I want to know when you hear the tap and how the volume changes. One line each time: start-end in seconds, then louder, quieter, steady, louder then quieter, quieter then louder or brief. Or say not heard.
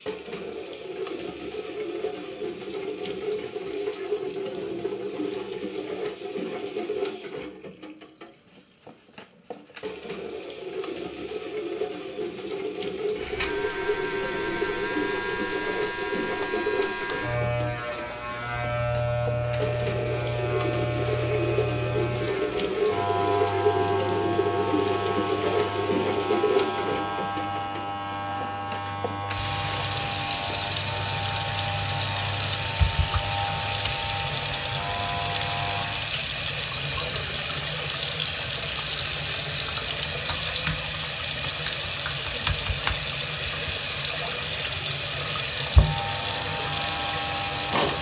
0.0-47.9 louder.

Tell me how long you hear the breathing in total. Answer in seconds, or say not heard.
not heard.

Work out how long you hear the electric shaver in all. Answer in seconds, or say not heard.
25 s.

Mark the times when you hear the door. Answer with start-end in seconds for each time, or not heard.
not heard.